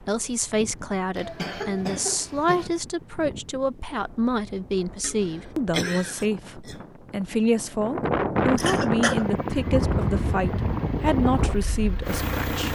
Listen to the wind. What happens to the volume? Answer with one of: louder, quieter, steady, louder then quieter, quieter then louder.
louder.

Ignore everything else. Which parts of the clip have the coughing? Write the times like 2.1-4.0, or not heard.
1.1-2.7, 5.0-6.8, 8.6-9.2.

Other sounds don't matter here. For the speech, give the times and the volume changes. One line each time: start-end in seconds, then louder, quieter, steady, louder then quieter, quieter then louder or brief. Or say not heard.
0.0-12.6 steady.